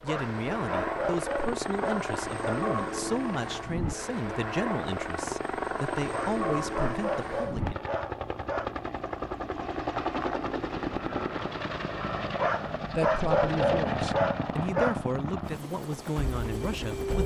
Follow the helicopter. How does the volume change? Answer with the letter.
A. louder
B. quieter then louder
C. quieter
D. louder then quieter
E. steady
E.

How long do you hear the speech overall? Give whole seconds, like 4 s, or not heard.
12 s.